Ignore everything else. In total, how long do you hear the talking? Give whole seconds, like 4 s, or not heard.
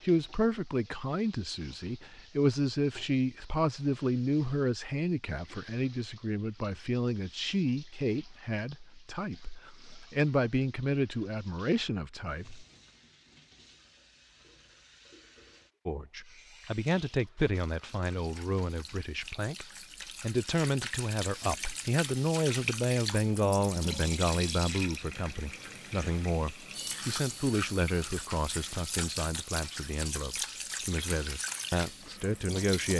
30 s.